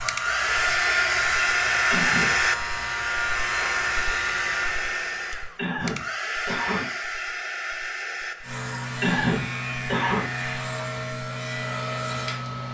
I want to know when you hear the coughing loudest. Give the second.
9 s.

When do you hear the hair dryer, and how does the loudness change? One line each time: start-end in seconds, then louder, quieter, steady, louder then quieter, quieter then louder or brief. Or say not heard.
0.0-12.6 quieter.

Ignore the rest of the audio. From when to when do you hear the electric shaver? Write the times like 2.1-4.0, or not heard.
0.0-4.8, 8.4-12.6.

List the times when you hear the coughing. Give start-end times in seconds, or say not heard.
1.9-2.4, 5.5-6.9, 9.0-10.3.